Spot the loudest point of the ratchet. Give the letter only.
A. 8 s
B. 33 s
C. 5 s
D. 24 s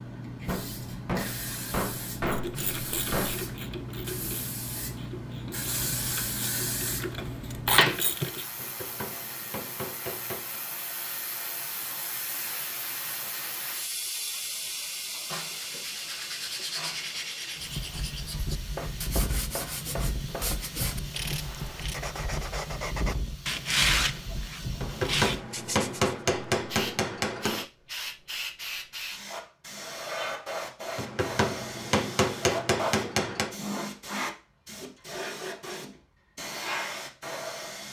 A.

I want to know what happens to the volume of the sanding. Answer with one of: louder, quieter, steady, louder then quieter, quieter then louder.
louder.